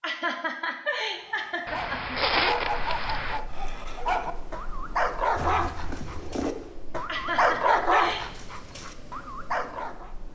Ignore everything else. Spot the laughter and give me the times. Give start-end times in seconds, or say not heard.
0.0-2.1, 7.0-8.2.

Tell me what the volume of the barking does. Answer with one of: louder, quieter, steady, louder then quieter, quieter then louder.
louder then quieter.